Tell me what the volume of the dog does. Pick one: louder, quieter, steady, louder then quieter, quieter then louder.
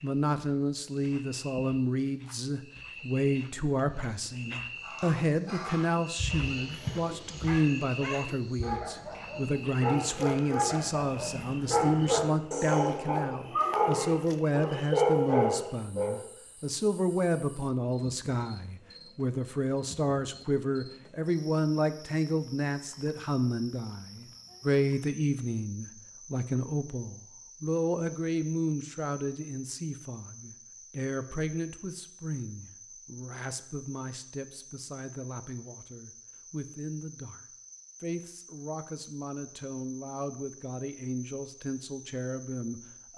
louder.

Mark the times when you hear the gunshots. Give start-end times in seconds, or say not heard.
not heard.